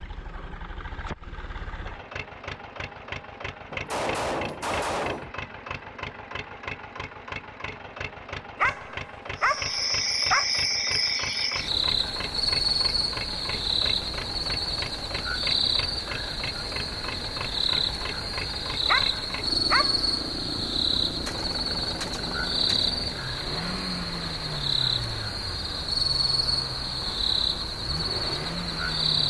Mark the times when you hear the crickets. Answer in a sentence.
You can hear the crickets from 9.3 to 29.2 s.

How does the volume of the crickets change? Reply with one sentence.
The loudness of the crickets stays about the same.